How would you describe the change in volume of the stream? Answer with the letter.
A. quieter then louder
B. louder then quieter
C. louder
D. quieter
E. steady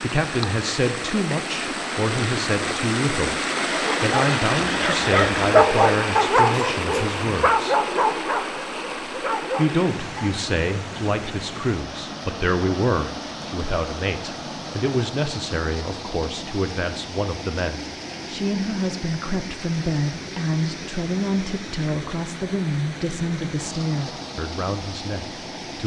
D.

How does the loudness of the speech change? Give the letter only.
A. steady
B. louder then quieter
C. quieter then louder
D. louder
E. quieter
A.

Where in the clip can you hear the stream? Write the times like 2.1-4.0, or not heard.
0.0-25.8.